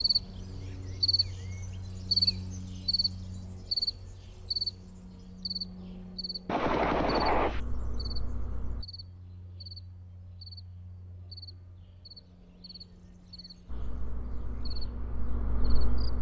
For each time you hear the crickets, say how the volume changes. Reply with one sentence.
The crickets can be heard from 0.0 to 16.1 s, getting quieter.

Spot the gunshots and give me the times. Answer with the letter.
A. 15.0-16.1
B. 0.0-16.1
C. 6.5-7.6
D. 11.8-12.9
C.